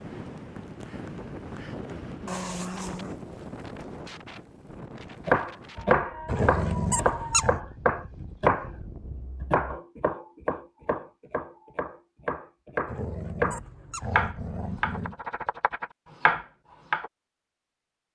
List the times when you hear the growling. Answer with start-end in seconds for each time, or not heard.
2.2-3.1, 6.2-7.6, 12.8-15.2.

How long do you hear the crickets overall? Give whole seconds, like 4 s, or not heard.
not heard.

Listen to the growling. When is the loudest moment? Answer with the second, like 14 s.
7 s.